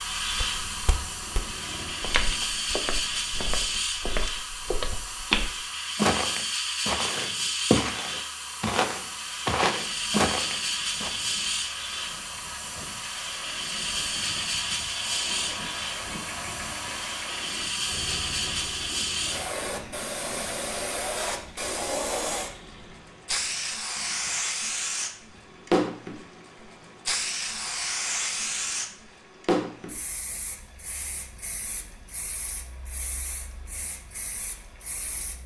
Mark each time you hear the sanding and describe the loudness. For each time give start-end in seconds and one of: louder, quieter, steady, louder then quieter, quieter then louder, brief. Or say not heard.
not heard.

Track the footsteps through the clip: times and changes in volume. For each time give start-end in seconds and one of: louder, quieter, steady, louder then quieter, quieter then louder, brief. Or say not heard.
0.0-11.1 louder.